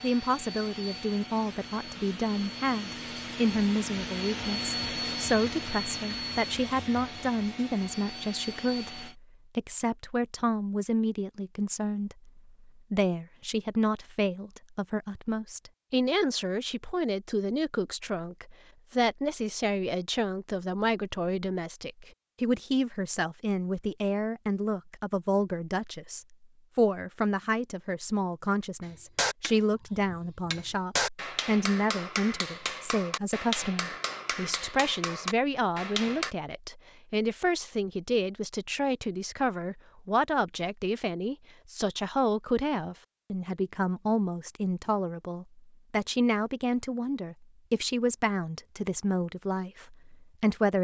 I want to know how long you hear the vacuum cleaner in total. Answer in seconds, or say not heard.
9 s.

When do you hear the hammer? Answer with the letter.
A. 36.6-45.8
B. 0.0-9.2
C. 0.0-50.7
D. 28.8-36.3
D.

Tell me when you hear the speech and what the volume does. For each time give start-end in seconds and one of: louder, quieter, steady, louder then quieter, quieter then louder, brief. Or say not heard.
0.0-50.7 steady.